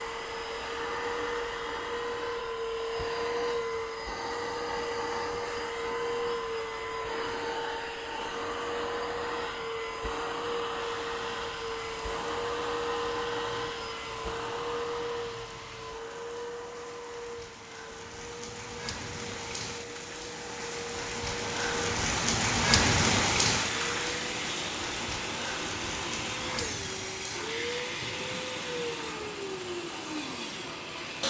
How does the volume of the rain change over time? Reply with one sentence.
The loudness of the rain goes up, then down.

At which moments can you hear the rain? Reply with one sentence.
The rain can be heard from 10.8 to 31.2 s.